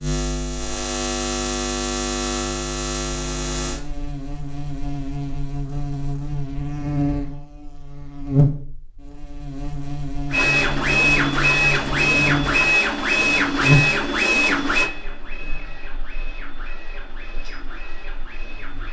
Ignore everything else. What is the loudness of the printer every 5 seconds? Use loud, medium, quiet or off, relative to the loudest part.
off, off, loud, quiet.